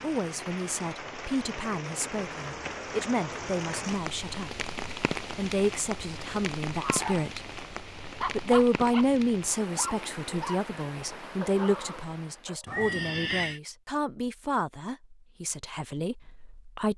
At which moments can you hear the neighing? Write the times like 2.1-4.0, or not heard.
12.7-13.6.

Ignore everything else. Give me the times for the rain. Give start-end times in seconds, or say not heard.
0.0-12.5.